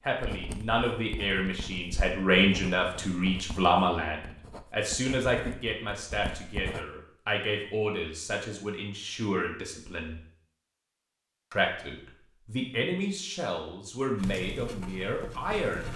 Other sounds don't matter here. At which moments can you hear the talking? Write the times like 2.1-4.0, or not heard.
0.0-10.2, 11.5-15.9.